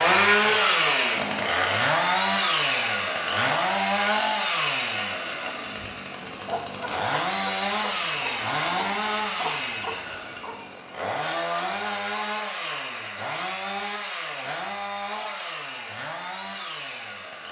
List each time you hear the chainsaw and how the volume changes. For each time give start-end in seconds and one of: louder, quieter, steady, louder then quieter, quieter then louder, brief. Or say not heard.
0.0-17.4 quieter.